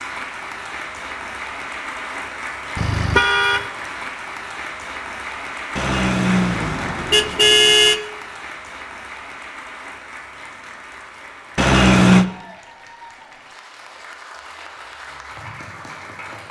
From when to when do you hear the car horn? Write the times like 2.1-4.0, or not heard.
2.8-3.6, 5.8-8.0, 11.6-12.2.